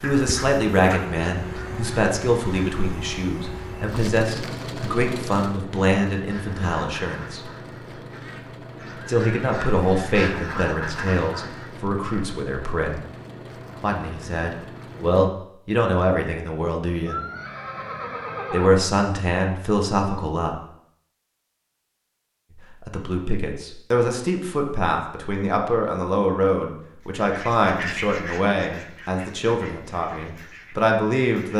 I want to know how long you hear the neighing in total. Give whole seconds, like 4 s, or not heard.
2 s.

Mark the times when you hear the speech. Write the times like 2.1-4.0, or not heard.
0.0-7.4, 9.1-13.1, 13.8-17.2, 18.5-20.6, 22.8-31.5.